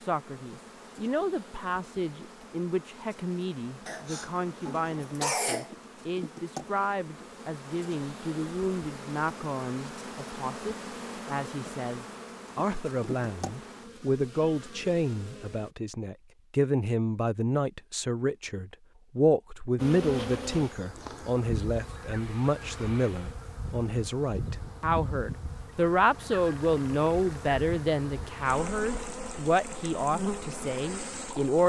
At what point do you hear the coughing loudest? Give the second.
5 s.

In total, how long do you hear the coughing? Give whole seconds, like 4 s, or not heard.
2 s.